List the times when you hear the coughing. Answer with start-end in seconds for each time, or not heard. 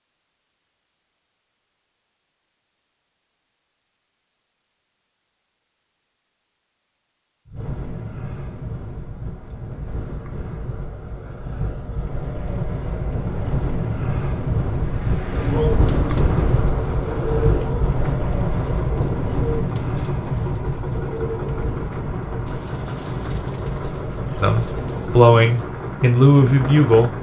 not heard.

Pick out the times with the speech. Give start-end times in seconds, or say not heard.
24.4-27.1.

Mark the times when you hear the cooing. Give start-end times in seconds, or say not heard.
15.3-25.6.